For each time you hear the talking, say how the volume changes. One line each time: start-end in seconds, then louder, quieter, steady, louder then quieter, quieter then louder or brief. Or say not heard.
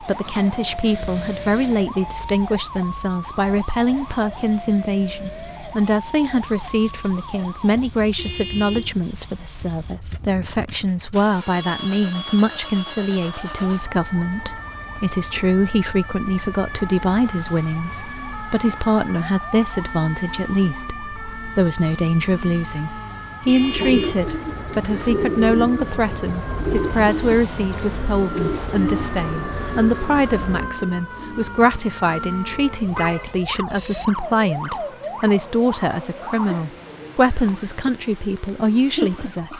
0.0-39.5 steady.